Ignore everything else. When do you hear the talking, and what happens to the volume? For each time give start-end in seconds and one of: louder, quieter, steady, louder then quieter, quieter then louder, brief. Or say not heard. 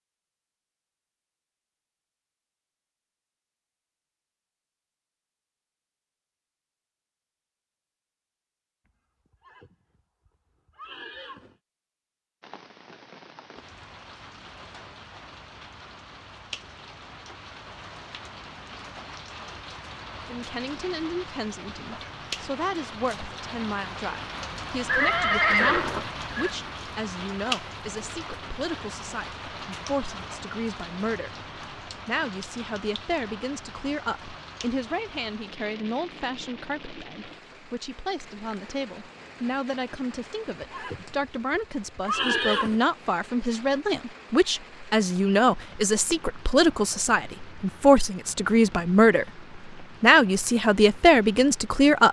20.2-52.0 louder.